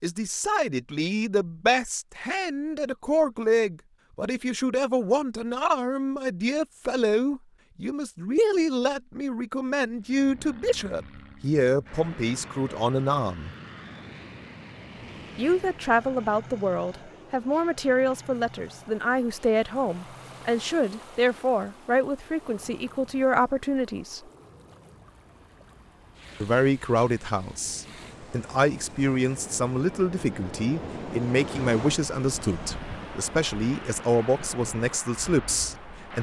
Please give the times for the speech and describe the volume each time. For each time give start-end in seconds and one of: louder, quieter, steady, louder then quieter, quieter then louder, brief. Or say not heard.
0.0-13.6 steady
15.3-24.2 steady
26.4-36.1 steady.